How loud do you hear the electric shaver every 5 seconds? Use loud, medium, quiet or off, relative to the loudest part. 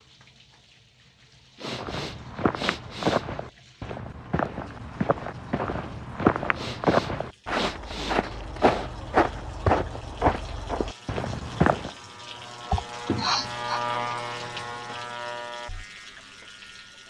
off, off, loud, medium.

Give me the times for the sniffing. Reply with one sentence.
The sniffing can be heard from 1.6 to 3.2 s, from 6.5 to 8.8 s and from 12.7 to 13.8 s.